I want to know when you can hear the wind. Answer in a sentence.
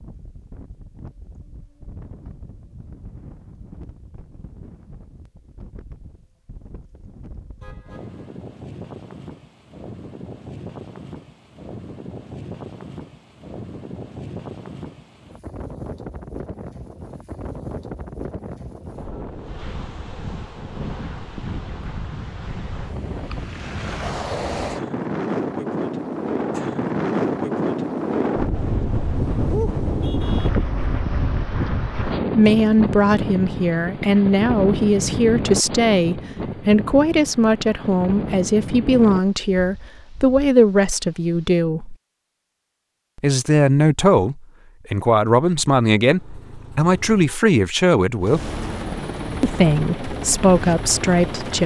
The wind can be heard from 0.0 to 41.6 s.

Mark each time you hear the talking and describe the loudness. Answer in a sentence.
The talking can be heard from 32.4 to 42.0 s, at a steady volume; from 43.2 to 48.5 s, at a steady volume; and briefly from 49.4 to 51.6 s.